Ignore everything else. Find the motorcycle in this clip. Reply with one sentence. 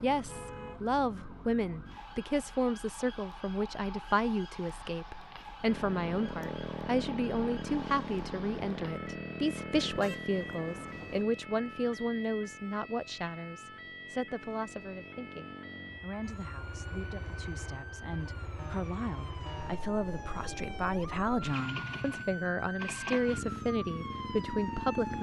You can hear the motorcycle from 5.7 to 25.1 s.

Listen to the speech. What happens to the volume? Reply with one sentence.
The loudness of the speech goes down, then up.